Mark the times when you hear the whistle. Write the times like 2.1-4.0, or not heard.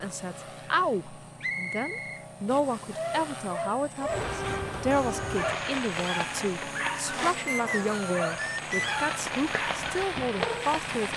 1.4-3.0, 7.5-9.0.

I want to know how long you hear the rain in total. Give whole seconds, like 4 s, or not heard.
7 s.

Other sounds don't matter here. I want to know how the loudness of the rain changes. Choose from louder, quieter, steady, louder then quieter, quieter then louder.
quieter then louder.